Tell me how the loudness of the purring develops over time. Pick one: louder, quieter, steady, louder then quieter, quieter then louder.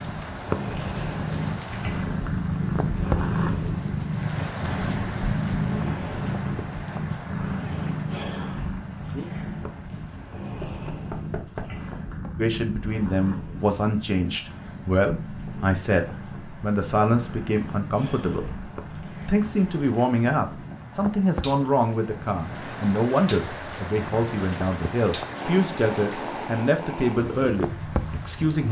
quieter.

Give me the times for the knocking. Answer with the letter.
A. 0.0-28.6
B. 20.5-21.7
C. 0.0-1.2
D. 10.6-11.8
D.